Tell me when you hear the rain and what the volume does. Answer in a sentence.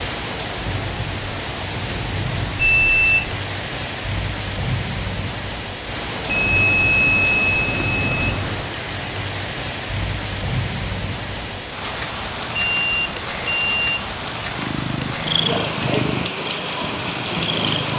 The rain can be heard from 0.0 to 17.9 s, at a steady volume.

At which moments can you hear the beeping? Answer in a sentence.
You can hear the beeping from 2.5 to 3.4 s, from 6.2 to 8.7 s and from 12.5 to 14.1 s.